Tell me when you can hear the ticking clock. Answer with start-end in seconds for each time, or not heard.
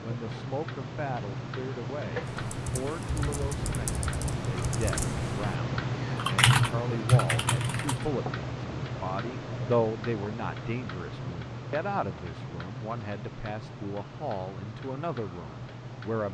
0.0-16.2.